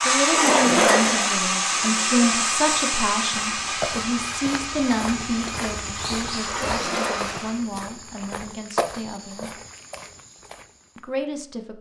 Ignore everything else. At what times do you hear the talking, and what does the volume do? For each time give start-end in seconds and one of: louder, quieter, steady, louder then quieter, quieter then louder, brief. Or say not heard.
0.0-9.5 quieter
10.9-11.7 brief.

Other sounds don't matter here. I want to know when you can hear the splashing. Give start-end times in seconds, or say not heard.
0.2-1.4, 6.4-7.6.